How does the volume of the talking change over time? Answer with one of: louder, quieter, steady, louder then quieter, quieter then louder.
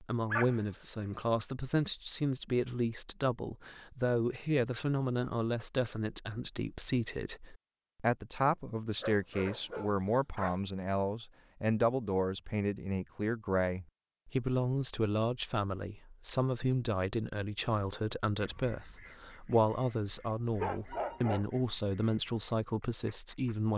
steady.